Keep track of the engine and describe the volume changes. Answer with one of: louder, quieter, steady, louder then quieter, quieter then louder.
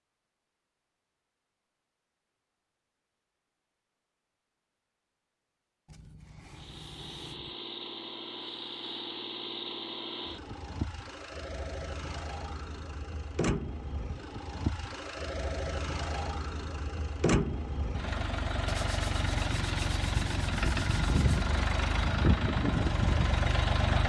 louder.